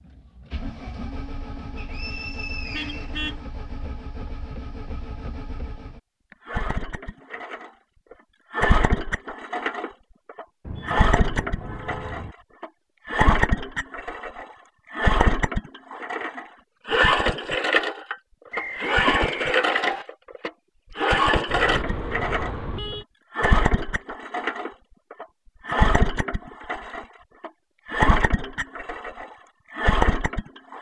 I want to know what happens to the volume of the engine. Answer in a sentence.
The volume of the engine goes up.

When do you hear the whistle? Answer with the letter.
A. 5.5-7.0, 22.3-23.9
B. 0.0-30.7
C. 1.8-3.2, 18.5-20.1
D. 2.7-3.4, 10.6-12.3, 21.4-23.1
C.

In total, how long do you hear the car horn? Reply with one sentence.
You can hear the car horn for 4 seconds altogether.